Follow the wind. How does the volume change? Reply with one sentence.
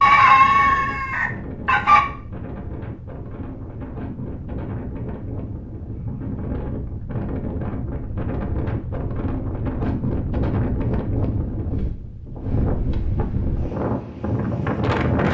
The loudness of the wind goes up.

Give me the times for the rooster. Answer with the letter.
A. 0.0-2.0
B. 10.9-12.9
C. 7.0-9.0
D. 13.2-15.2
A.